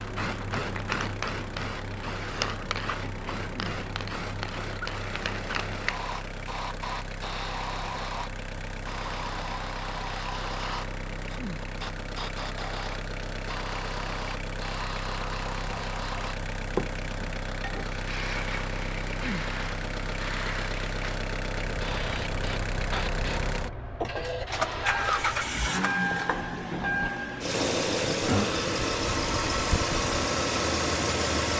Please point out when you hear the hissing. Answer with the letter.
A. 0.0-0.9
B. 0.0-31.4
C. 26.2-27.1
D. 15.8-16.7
B.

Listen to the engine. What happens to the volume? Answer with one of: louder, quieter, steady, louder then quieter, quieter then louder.
louder.